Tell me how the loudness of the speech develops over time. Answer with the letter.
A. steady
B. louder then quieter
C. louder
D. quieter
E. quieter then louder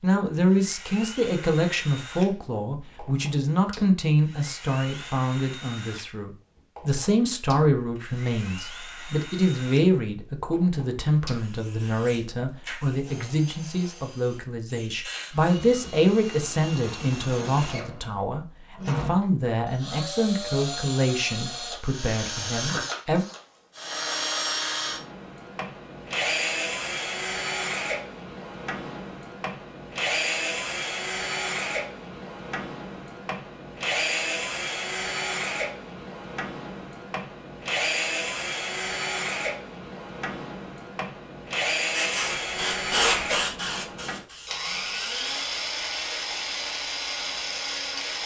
A.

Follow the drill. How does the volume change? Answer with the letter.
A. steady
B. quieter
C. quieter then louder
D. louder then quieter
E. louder
E.